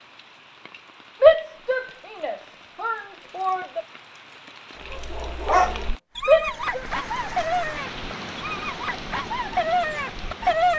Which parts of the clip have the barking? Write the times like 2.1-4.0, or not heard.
4.9-10.7.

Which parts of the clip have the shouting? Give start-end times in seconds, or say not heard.
1.2-3.8, 6.2-6.8.